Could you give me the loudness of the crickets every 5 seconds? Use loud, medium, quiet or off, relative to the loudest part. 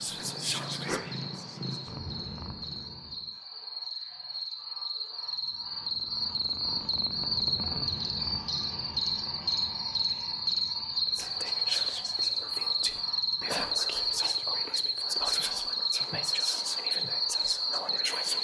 medium, loud, loud, loud.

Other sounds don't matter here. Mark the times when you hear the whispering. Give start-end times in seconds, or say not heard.
0.0-1.9, 11.1-18.3.